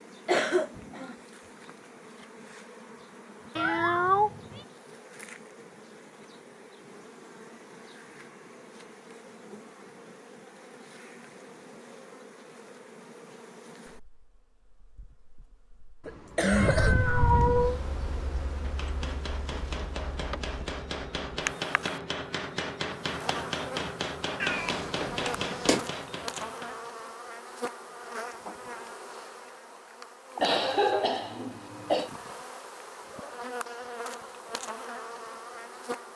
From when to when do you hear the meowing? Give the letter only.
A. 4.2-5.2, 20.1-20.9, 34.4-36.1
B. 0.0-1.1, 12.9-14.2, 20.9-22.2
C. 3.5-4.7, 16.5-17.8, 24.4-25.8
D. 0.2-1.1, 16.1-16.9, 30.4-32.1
C.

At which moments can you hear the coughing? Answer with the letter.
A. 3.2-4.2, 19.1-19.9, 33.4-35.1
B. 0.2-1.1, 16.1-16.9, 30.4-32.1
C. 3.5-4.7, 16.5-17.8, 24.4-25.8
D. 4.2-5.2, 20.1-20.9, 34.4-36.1
B.